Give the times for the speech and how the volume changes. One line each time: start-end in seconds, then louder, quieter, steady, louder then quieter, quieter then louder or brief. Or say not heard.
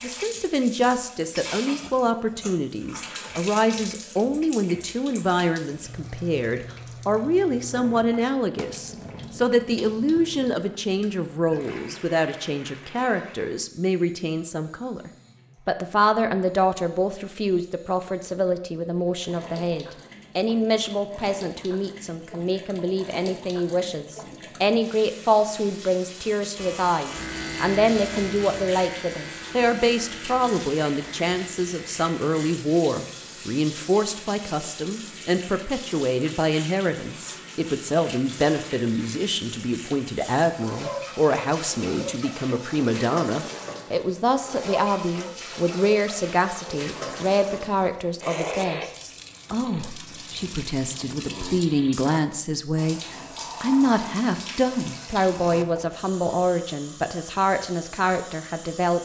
0.0-59.0 steady.